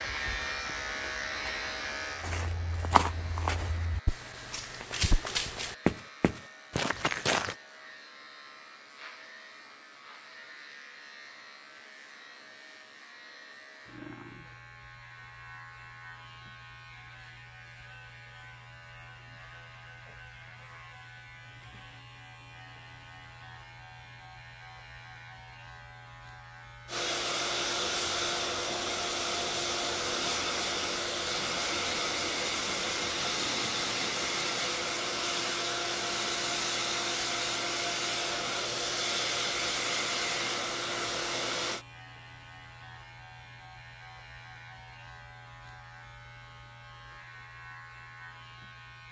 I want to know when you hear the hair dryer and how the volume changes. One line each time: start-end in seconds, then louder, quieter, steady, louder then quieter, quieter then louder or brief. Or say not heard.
26.9-41.9 steady.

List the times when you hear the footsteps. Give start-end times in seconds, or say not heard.
0.0-7.5.